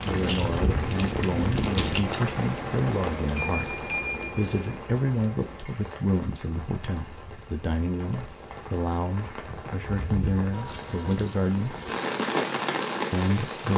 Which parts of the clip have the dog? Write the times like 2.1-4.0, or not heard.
not heard.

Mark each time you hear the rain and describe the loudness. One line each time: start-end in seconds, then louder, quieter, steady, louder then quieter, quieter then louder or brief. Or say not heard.
0.0-13.7 quieter then louder.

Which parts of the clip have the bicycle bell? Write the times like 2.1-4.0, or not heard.
3.4-4.5.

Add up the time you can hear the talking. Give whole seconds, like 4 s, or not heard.
12 s.